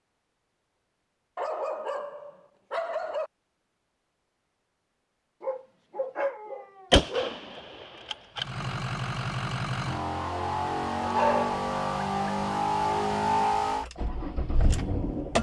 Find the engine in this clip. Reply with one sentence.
The engine can be heard from 8.3 to 15.3 s.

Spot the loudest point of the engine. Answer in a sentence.
The volume of the engine peaks at 13 seconds.